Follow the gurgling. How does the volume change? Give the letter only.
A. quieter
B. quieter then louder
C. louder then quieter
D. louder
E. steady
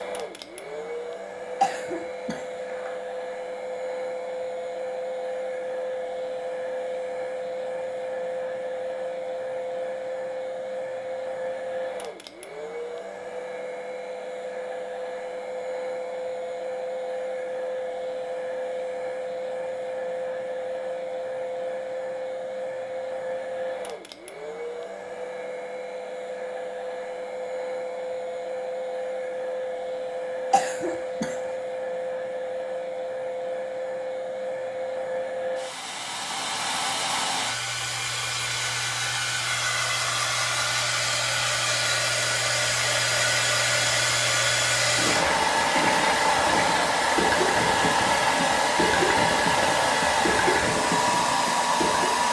E.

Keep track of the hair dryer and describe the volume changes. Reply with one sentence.
The loudness of the hair dryer goes up.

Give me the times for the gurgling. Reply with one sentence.
You can hear the gurgling from 44.8 to 52.2 s.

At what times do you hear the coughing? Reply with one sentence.
The coughing can be heard from 1.6 to 3.0 s and from 30.5 to 31.6 s.